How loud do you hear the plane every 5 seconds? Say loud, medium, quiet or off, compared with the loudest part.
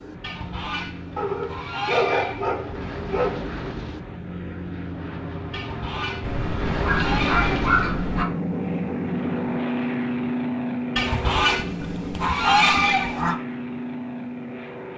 medium, loud, loud.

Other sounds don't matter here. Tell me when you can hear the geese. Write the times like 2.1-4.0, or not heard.
0.2-2.6, 5.5-7.8, 10.9-13.3.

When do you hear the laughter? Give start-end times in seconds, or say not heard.
not heard.